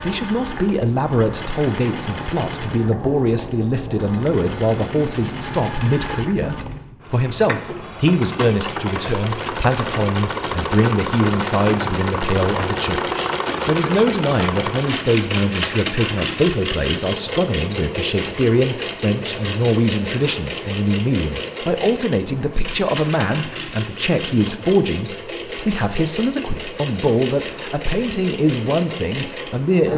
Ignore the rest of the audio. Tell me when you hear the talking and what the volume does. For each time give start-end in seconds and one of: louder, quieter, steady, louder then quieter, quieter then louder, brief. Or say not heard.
0.0-29.9 steady.